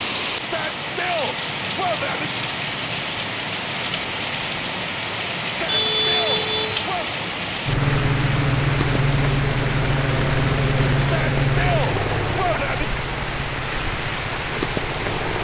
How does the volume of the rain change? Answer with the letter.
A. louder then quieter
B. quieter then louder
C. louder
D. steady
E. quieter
D.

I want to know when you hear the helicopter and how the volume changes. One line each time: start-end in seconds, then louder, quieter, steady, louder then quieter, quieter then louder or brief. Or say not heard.
7.7-15.3 quieter.